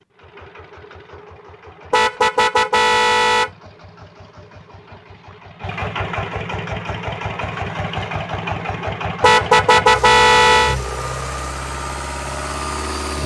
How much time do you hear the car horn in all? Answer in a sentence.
The car horn can be heard for 3 seconds in total.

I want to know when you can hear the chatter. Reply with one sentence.
You can't hear the chatter here.